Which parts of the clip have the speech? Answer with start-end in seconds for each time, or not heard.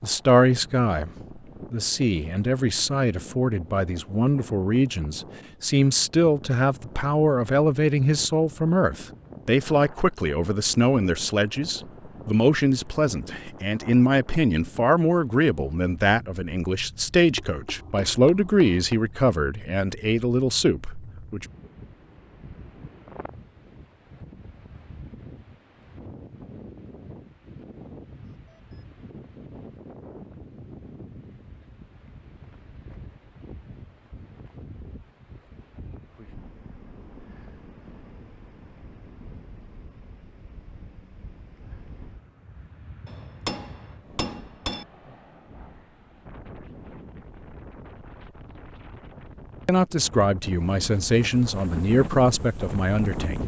0.0-21.4, 49.6-53.4.